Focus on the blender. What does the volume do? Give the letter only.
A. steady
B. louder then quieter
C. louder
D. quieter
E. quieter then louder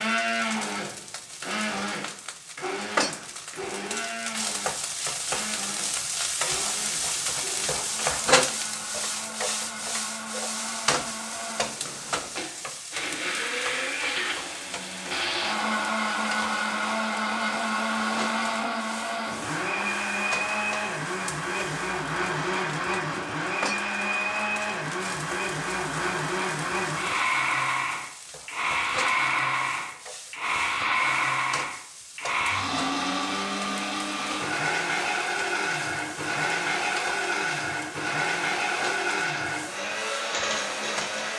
C.